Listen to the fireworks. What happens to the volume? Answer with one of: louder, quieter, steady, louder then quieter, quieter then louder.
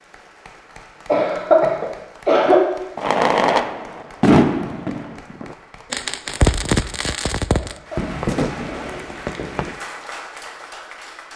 quieter.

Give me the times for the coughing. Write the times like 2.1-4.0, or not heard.
1.1-2.6, 7.5-9.0.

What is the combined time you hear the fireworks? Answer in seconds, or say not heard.
7 s.